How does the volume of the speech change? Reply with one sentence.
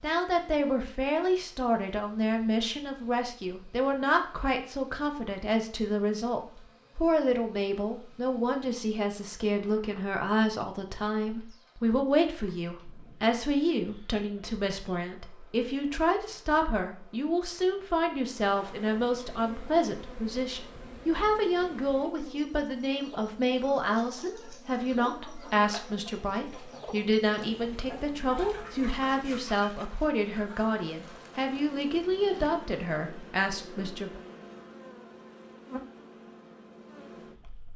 The volume of the speech stays about the same.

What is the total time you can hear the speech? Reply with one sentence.
You can hear the speech for 34 seconds altogether.